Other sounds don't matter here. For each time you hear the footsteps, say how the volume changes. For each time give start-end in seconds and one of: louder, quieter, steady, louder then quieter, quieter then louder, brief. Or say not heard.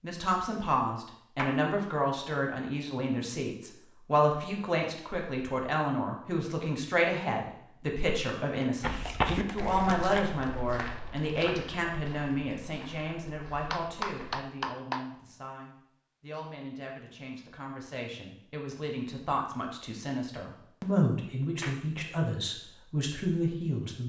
8.8-14.4 quieter.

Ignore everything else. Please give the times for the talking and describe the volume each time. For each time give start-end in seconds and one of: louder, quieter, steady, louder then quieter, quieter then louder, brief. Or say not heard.
0.0-24.0 quieter then louder.